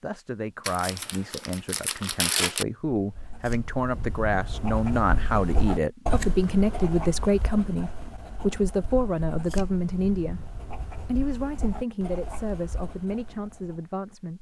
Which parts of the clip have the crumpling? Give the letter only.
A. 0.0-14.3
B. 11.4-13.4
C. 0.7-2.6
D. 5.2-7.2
C.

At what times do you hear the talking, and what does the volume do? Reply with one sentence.
You can hear the talking from 0.0 to 14.3 s, getting louder then quieter.